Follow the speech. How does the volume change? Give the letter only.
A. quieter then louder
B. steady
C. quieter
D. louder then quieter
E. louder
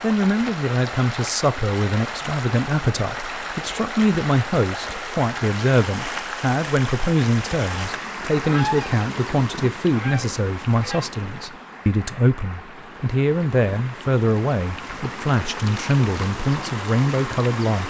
B.